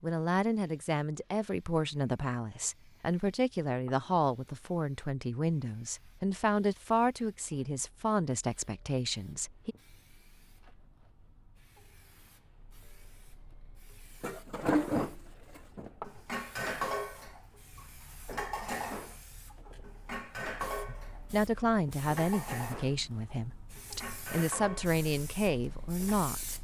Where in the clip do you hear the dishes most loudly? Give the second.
15 s.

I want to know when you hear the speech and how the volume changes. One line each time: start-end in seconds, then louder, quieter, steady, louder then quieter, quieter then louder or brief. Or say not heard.
0.0-9.8 steady
20.9-26.5 quieter then louder.